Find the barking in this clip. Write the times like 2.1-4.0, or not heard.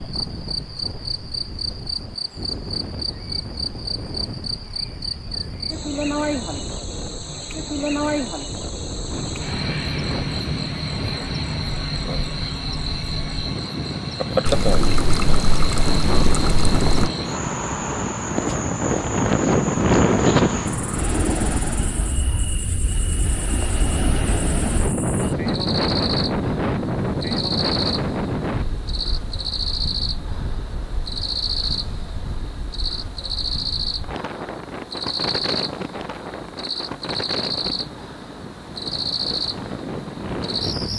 not heard.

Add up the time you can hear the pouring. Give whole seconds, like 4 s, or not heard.
3 s.